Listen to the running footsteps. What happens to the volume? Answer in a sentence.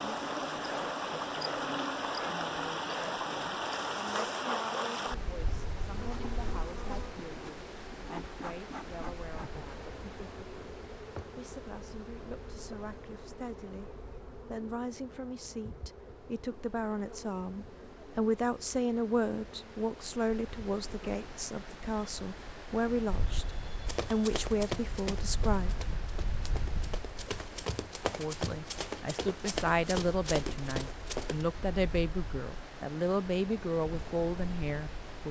The loudness of the running footsteps goes down, then up.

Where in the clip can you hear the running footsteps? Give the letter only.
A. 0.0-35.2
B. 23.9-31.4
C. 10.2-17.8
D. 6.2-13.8
B.